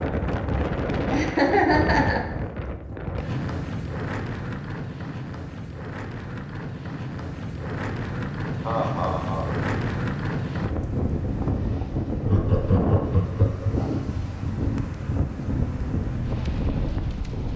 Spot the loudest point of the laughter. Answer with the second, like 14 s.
2 s.